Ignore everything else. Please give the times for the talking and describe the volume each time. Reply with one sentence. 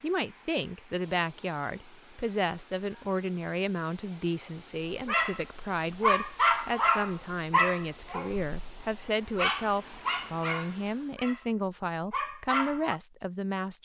You can hear the talking from 0.0 to 13.7 s, at a steady volume.